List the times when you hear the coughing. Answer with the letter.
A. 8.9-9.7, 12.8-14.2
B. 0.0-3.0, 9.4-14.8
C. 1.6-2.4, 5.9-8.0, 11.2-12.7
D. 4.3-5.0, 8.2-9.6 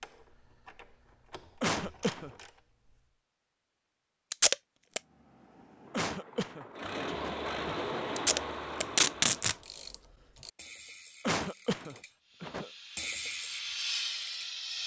C.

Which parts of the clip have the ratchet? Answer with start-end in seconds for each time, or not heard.
0.0-3.0, 9.4-14.8.